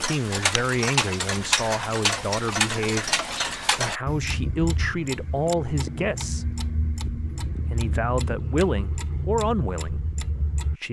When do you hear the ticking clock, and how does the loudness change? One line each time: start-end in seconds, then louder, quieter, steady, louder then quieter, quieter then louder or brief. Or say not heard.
0.0-10.8 quieter.